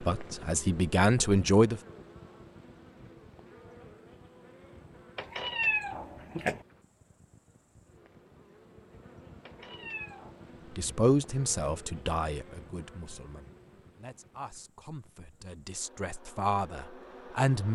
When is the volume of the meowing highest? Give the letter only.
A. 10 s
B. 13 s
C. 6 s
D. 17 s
C.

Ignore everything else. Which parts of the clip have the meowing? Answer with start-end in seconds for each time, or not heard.
5.2-6.6, 9.4-10.5.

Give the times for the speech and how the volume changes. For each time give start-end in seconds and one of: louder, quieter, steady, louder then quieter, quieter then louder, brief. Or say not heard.
0.0-1.8 brief
10.7-17.6 quieter then louder.